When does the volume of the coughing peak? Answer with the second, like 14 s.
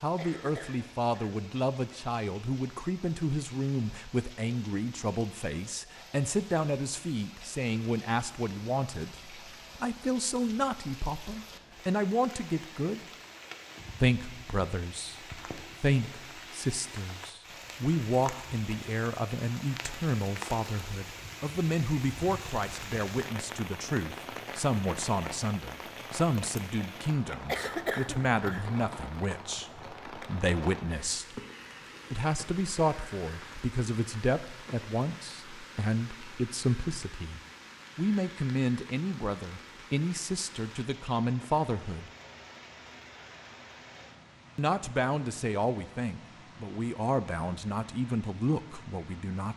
28 s.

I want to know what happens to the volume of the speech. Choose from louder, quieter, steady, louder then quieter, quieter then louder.
steady.